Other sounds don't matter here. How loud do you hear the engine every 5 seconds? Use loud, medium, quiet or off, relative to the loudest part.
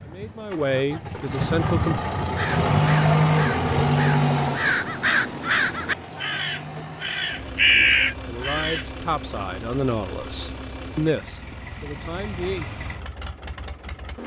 loud, quiet, quiet.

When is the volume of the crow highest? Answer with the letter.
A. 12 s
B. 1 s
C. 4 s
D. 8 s
D.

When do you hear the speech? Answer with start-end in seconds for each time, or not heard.
0.0-2.0, 7.7-12.7.